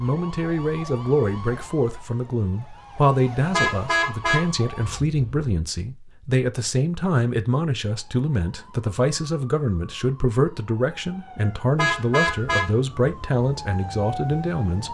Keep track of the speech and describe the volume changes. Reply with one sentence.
The volume of the speech stays about the same.